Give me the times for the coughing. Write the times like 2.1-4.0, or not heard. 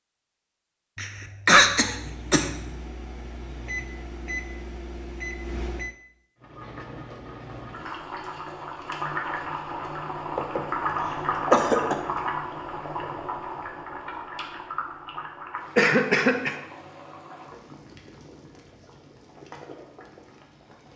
0.9-2.5, 10.3-11.9, 15.8-16.6.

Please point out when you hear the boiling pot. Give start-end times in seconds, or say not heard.
6.3-20.9.